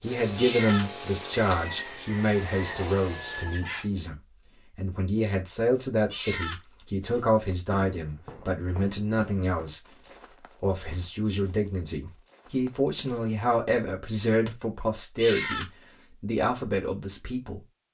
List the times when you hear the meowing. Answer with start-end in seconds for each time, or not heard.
0.3-1.9, 6.1-6.6, 15.2-15.7.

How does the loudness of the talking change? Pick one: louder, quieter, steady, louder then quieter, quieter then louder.
steady.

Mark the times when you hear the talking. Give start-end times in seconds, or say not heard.
0.0-9.8, 10.4-17.6.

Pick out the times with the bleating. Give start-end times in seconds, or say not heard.
not heard.